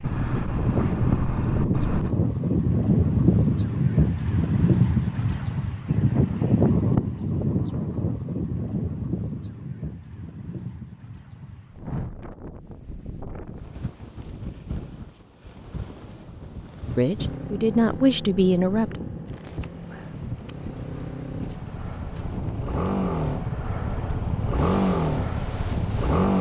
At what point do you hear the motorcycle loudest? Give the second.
25 s.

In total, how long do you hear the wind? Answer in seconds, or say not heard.
26 s.